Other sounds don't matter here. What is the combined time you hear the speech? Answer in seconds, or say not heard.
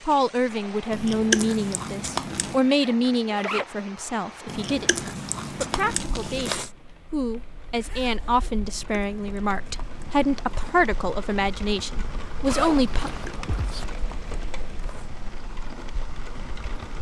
13 s.